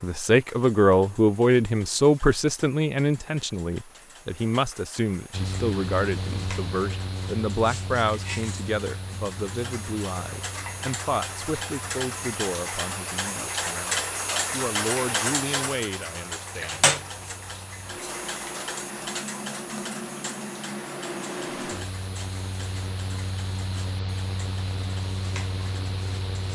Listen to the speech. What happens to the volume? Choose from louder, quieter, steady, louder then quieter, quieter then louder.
quieter.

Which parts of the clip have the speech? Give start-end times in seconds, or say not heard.
0.0-16.9.